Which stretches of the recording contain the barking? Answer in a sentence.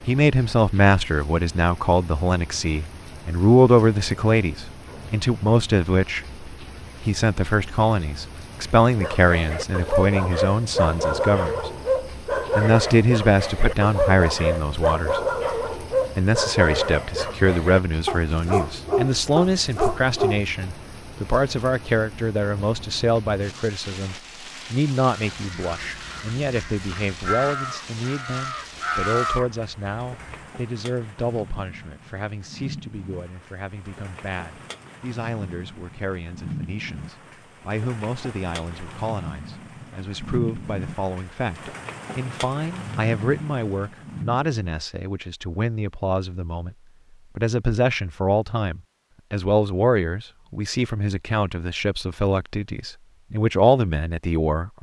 You can hear the barking from 8.9 to 20.4 s.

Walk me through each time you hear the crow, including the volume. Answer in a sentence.
The crow can be heard from 25.1 to 30.5 s, getting louder.